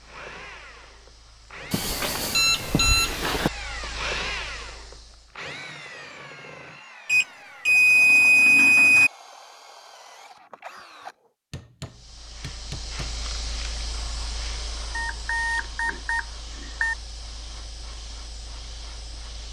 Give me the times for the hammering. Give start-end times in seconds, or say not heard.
11.5-13.2.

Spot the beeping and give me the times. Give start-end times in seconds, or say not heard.
1.7-3.5, 7.0-9.1, 14.9-16.9.